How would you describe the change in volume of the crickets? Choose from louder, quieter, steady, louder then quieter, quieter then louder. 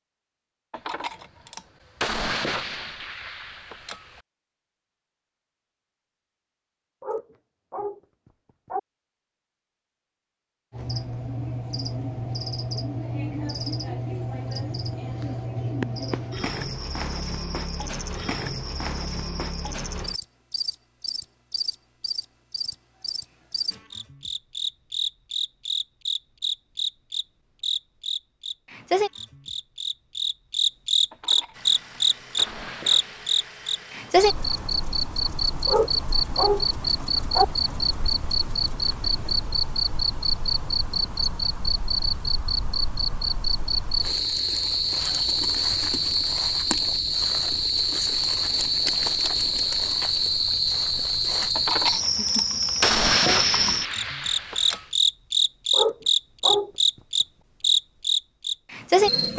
louder.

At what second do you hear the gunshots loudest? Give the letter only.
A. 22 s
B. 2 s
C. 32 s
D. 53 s
D.